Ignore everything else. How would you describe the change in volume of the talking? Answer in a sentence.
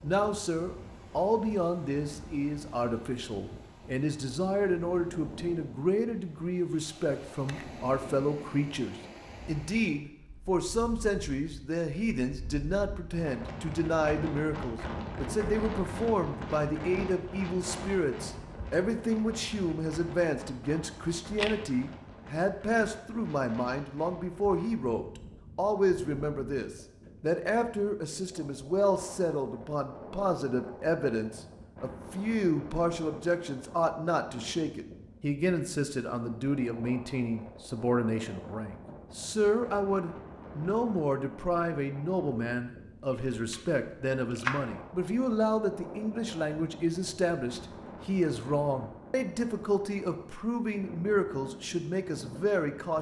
The loudness of the talking stays about the same.